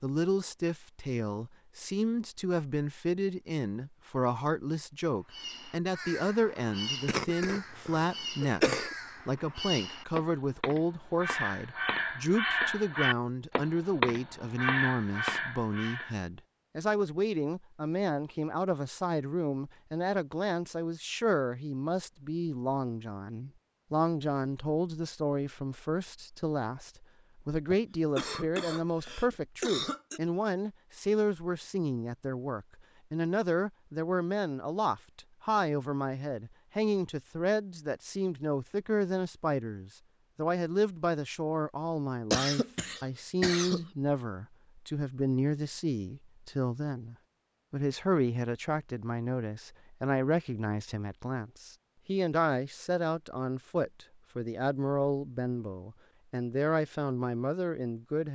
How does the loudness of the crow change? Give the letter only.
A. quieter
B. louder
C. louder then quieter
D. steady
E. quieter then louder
B.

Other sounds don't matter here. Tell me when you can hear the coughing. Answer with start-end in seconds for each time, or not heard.
7.0-8.9, 27.7-30.2, 42.3-43.9.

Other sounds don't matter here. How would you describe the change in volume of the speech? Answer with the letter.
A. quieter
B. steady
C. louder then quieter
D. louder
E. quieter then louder
B.